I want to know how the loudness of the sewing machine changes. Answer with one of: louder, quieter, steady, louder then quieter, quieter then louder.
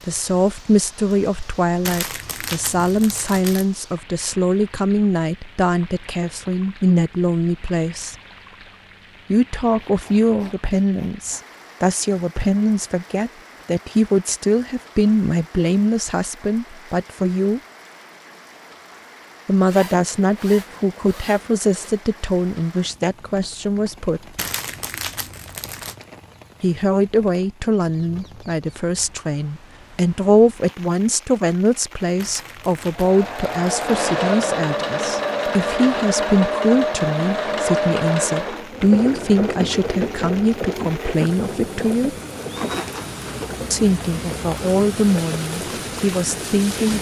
quieter.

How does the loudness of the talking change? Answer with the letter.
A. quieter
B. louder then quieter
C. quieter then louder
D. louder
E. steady
E.